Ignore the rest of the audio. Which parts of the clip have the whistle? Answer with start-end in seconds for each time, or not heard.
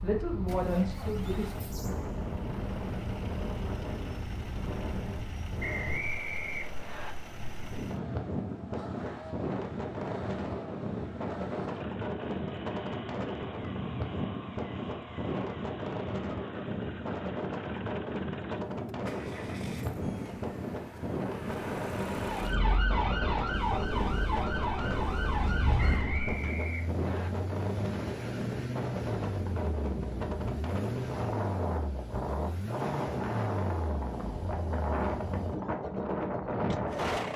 5.6-7.2, 25.8-27.3.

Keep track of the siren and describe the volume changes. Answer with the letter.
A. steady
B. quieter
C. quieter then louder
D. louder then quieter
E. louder
A.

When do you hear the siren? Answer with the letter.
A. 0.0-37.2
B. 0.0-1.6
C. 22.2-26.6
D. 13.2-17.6
C.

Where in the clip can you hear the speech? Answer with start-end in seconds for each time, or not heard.
0.0-1.6.